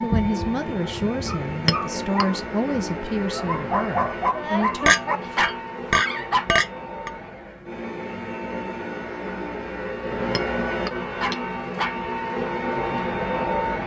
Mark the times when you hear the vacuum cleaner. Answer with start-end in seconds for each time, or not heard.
0.0-13.8.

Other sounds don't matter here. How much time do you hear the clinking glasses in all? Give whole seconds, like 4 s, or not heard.
4 s.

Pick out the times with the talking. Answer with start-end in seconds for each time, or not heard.
0.0-5.0.